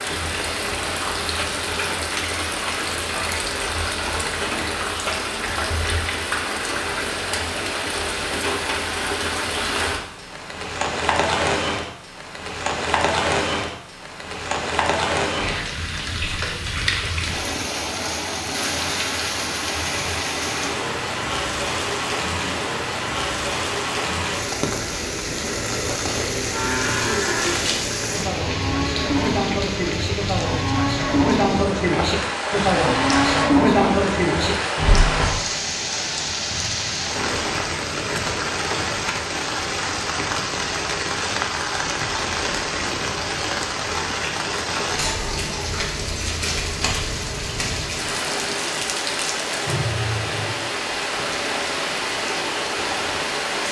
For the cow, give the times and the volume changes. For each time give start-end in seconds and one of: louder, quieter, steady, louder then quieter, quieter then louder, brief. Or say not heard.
26.5-35.4 louder.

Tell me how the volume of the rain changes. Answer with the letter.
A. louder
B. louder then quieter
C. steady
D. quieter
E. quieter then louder
C.